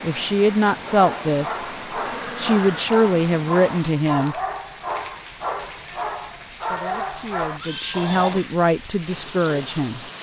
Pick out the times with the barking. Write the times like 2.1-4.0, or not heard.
0.8-8.4.